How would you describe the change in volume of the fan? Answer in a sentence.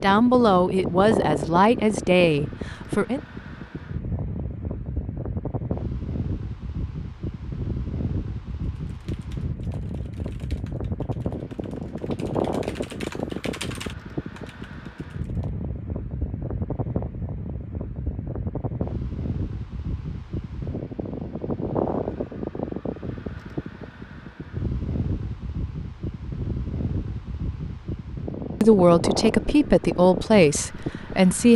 The loudness of the fan stays about the same.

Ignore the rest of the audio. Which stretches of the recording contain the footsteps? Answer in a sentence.
You can't hear the footsteps here.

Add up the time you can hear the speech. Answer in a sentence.
You can hear the speech for 6 seconds altogether.